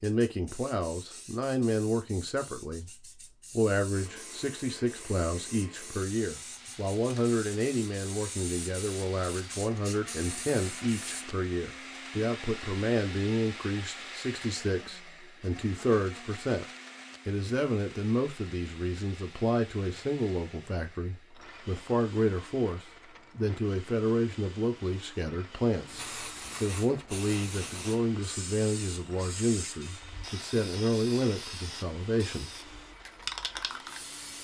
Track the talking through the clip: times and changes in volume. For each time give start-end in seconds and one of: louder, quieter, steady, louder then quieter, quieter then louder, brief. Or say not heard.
0.0-16.6 steady
17.2-32.5 steady.